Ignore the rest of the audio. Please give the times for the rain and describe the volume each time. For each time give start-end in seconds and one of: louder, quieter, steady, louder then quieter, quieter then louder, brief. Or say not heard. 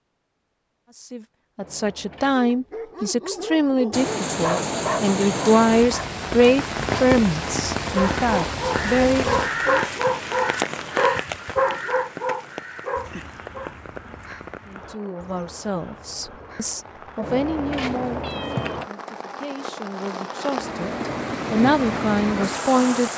3.9-23.1 quieter then louder.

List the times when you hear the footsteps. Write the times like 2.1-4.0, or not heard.
not heard.